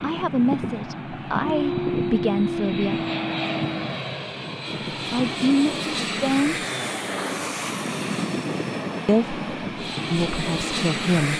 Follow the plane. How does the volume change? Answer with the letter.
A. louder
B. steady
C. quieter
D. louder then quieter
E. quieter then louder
B.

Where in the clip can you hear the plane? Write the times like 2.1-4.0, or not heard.
0.0-11.3.